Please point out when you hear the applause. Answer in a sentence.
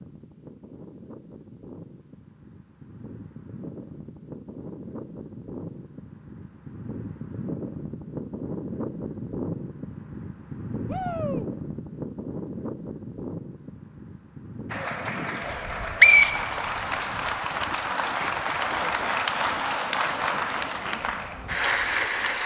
You can hear the applause from 14.7 to 22.4 s.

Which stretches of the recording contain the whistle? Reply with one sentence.
The whistle can be heard from 15.4 to 17.1 s.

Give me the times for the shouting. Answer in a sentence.
You can hear the shouting from 10.8 to 11.4 s.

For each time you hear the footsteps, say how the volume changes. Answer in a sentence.
The footsteps can't be heard in this clip.